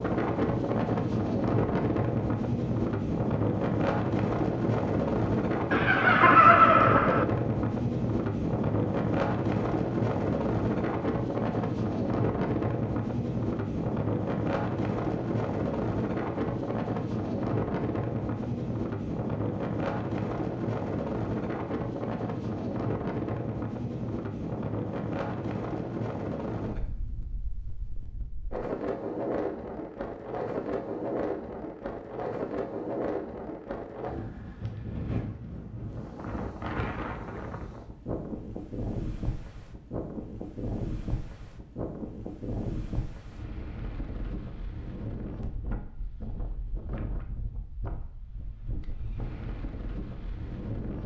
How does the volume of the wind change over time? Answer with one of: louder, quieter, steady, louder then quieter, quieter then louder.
quieter.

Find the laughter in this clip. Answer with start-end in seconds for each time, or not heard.
5.7-7.2.